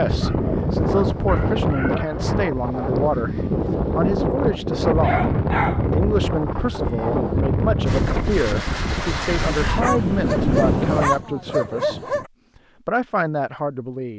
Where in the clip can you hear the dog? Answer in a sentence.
The dog can be heard from 0.1 to 2.2 s, from 5.0 to 5.9 s and from 9.8 to 12.3 s.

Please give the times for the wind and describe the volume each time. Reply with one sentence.
The wind can be heard from 0.0 to 11.2 s, at a steady volume.